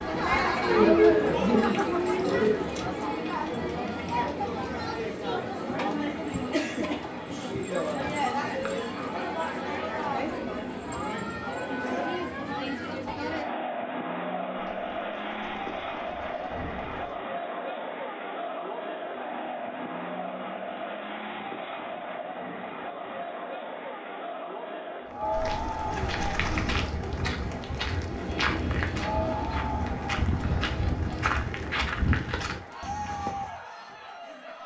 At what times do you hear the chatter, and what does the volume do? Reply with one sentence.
The chatter can be heard from 0.0 to 34.6 s, getting quieter.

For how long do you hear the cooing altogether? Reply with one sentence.
The cooing can be heard for 6 seconds in total.